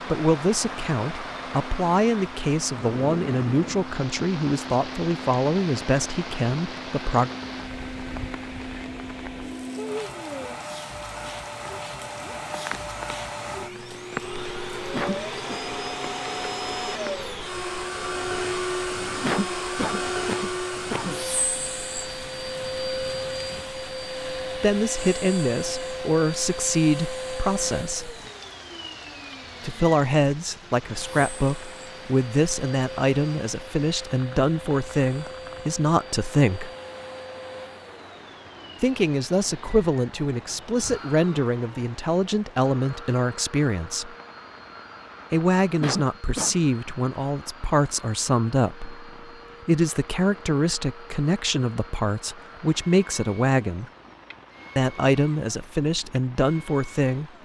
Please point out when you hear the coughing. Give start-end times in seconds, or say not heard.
14.9-15.6, 19.2-21.2, 45.8-46.5.